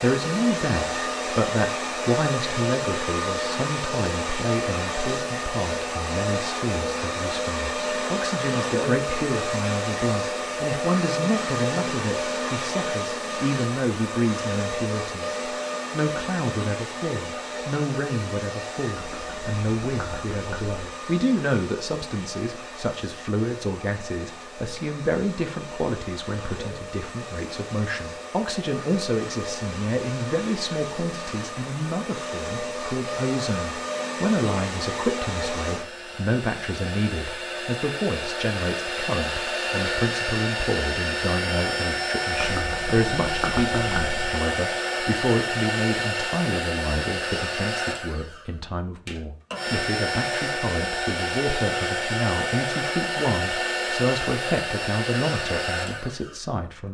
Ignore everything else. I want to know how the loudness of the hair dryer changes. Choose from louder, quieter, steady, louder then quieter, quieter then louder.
quieter then louder.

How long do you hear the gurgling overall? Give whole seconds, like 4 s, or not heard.
4 s.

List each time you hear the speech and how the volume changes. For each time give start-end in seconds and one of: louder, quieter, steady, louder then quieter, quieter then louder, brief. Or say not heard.
0.0-56.8 steady.